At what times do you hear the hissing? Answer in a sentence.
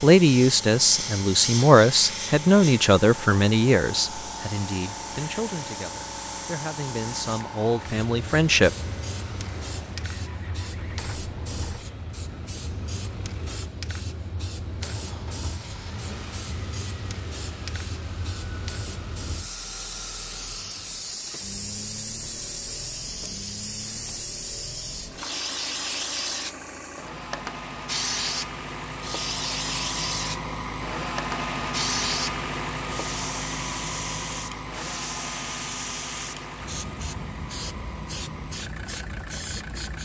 You can hear the hissing from 0.0 to 39.9 s.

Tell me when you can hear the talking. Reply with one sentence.
The talking can be heard from 0.0 to 8.7 s.